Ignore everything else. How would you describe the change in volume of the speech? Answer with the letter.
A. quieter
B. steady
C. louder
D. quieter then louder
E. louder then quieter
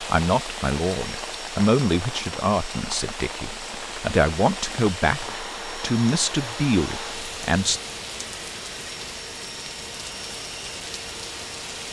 B.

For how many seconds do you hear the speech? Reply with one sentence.
You can hear the speech for 8 seconds altogether.